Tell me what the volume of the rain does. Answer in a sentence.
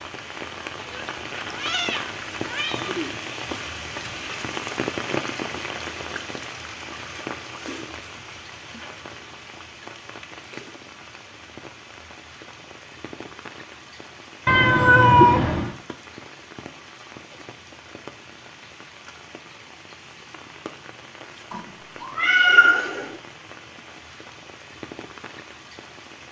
The volume of the rain goes down.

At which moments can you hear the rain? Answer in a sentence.
The rain can be heard from 0.0 to 26.2 s.